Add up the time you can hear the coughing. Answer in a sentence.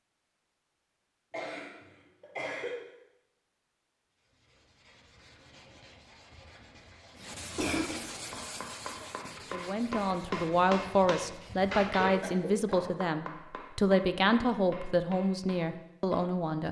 You can hear the coughing for 3 seconds altogether.